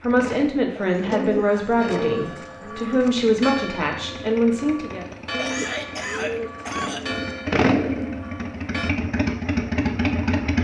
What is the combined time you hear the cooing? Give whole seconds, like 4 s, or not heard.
4 s.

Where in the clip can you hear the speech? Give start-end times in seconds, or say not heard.
0.0-5.0.